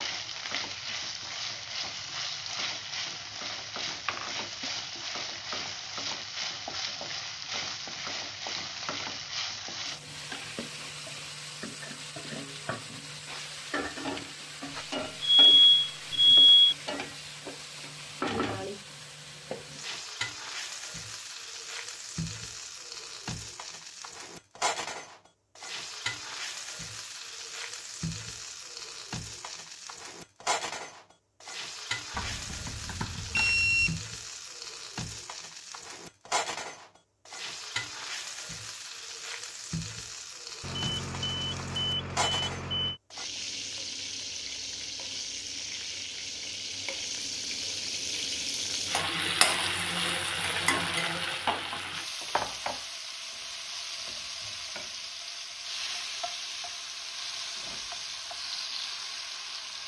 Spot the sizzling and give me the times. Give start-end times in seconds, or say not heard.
0.0-59.8.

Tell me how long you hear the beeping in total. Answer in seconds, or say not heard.
6 s.